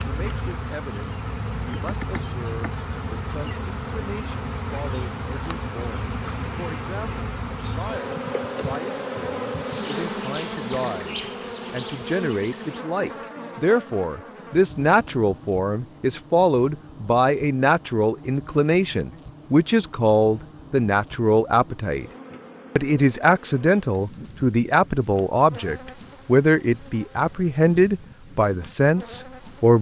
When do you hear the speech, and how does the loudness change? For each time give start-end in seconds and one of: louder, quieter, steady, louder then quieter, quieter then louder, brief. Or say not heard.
0.1-22.1 louder
22.8-29.7 steady.